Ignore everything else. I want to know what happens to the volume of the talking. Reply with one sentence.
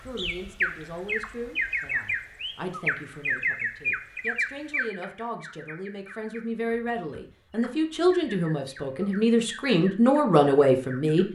The loudness of the talking goes up.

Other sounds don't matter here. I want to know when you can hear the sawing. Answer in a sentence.
You can't hear the sawing here.